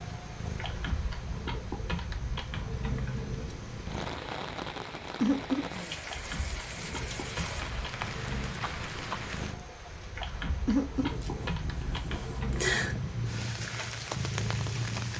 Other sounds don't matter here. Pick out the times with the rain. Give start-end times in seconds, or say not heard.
0.0-15.1.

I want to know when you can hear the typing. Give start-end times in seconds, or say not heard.
0.6-3.5, 6.0-8.6, 10.2-13.1.